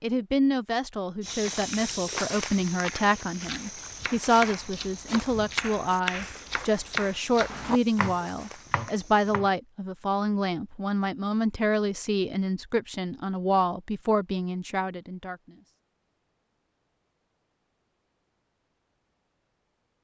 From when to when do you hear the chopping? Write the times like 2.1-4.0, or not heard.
1.7-9.5.